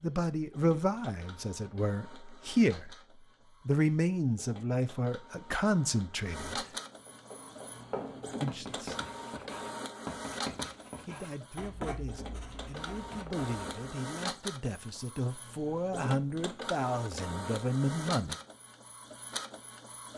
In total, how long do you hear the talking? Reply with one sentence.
The talking can be heard for 14 seconds in total.